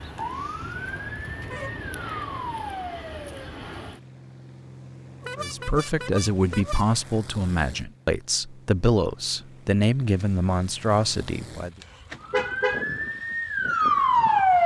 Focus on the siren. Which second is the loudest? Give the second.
14 s.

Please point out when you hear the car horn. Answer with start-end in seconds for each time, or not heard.
0.6-2.6, 5.2-7.0, 11.8-12.8.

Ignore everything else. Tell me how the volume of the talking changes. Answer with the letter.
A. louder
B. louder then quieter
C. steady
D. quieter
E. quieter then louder
C.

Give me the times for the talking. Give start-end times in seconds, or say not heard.
5.3-11.7.